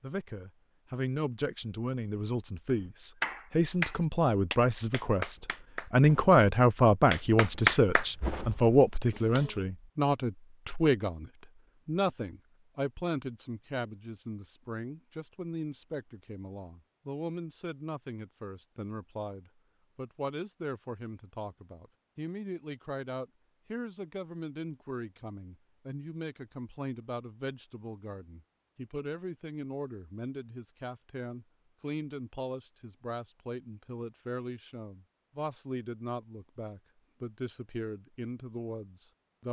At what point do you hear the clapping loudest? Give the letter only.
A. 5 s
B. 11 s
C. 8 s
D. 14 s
C.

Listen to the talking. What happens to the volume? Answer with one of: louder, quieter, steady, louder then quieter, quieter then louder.
quieter.